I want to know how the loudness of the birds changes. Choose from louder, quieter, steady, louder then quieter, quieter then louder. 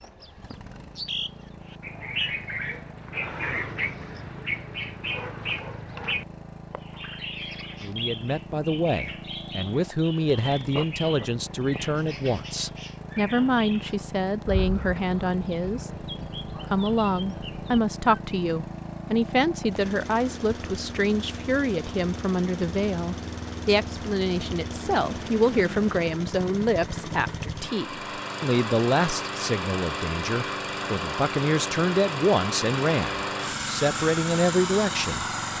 quieter.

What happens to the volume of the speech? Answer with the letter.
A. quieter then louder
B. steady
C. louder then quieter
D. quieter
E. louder
B.